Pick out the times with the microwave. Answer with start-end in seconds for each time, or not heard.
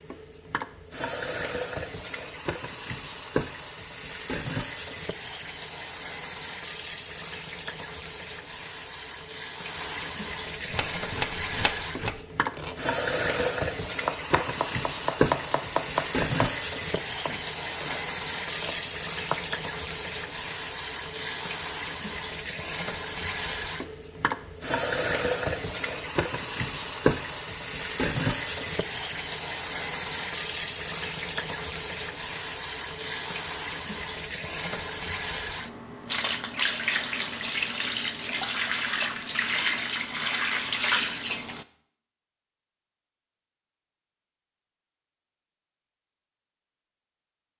not heard.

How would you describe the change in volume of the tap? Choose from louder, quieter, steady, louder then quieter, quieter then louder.
louder.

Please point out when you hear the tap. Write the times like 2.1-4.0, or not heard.
0.0-41.6.